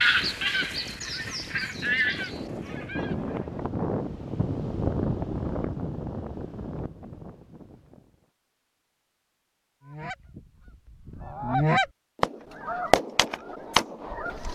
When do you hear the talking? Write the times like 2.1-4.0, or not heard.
not heard.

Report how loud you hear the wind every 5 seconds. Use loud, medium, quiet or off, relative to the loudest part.
loud, loud, off.